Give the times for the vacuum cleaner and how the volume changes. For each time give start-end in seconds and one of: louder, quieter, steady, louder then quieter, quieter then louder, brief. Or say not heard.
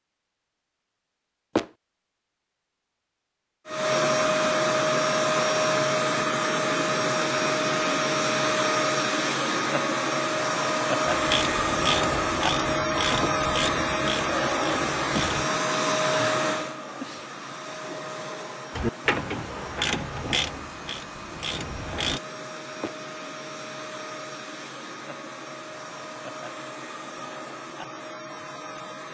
3.6-29.1 quieter.